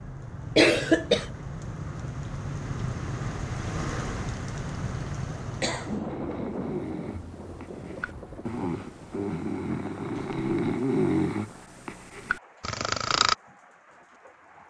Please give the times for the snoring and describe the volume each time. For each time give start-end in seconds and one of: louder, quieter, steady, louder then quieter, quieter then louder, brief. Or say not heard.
6.0-13.3 louder then quieter.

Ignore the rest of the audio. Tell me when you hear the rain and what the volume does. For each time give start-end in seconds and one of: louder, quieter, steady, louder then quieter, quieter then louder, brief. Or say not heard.
0.0-14.6 quieter.